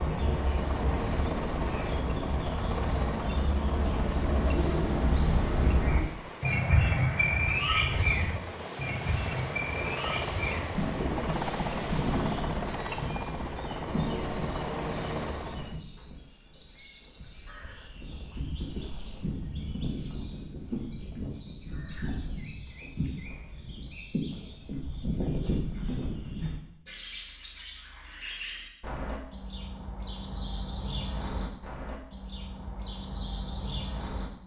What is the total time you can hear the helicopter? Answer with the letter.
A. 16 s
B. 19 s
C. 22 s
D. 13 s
A.